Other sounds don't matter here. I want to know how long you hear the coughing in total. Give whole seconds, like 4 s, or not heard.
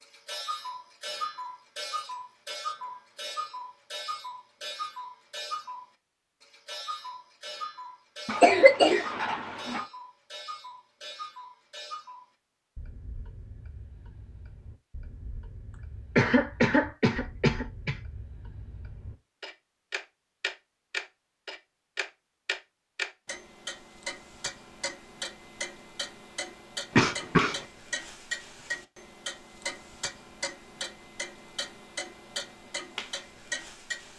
4 s.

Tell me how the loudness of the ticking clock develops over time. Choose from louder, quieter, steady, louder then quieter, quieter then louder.
quieter then louder.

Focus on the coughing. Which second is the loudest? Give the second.
9 s.